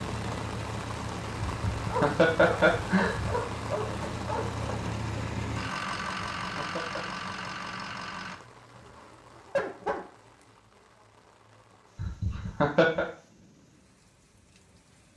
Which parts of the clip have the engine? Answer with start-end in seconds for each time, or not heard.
0.0-8.4.